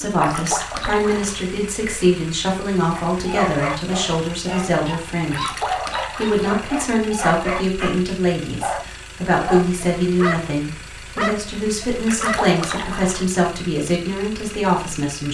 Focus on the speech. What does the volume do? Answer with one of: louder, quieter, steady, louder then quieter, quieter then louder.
steady.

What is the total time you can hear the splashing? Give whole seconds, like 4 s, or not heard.
4 s.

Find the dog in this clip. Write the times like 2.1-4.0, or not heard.
3.1-10.5, 11.2-12.4.